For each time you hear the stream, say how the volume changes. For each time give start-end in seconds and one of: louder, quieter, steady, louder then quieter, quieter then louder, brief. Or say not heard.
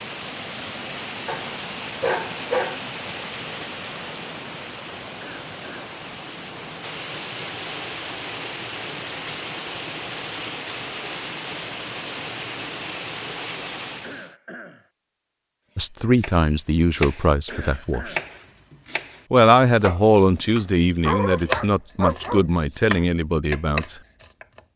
0.0-14.3 steady.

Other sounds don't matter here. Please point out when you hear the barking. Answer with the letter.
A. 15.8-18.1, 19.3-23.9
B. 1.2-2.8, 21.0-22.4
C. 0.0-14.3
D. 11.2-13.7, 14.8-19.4
B.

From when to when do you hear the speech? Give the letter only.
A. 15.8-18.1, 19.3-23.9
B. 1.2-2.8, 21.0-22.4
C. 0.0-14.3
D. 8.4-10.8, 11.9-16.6
A.